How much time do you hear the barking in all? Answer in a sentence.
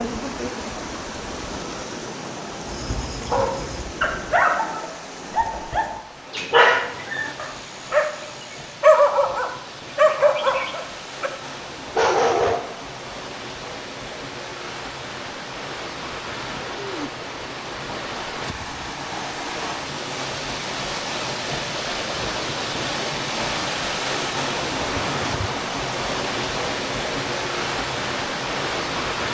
You can hear the barking for 9 seconds altogether.